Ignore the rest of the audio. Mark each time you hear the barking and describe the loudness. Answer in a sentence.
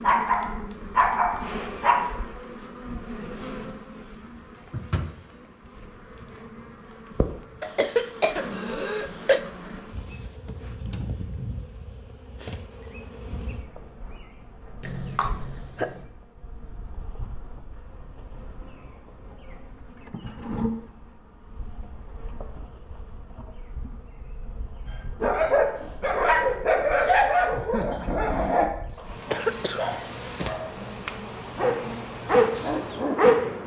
You can hear the barking briefly from 0.0 to 2.1 s; from 25.2 to 30.8 s, getting quieter; and briefly from 31.6 to 33.6 s.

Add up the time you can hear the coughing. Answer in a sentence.
You can hear the coughing for 5 seconds altogether.